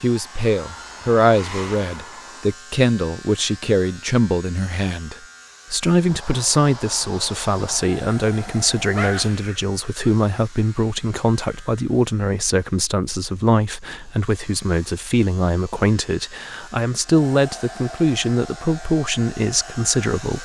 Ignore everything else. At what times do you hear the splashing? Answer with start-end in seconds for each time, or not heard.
not heard.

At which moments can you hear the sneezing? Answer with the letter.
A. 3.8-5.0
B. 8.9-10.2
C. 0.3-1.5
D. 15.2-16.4
B.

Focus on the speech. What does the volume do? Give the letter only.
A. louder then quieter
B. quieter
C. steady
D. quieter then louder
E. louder
C.